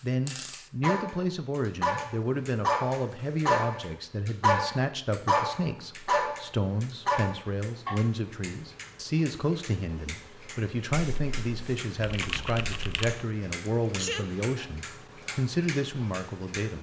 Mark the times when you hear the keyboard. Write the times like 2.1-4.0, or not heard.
10.9-13.2.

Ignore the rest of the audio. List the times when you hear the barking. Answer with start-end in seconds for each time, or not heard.
0.8-8.0.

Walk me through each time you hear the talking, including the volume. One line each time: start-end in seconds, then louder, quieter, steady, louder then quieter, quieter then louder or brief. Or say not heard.
0.0-16.7 steady.